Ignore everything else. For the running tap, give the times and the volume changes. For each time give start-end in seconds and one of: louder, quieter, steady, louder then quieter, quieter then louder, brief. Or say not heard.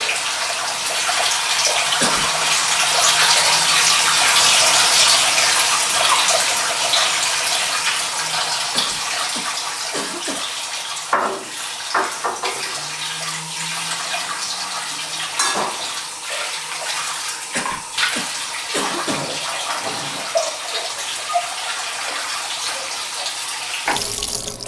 0.0-24.6 quieter.